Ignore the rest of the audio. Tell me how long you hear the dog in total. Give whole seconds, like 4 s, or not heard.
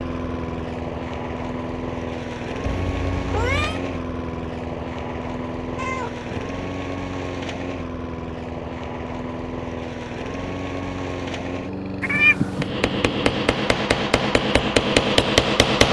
not heard.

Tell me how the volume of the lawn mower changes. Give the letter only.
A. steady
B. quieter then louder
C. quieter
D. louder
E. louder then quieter
A.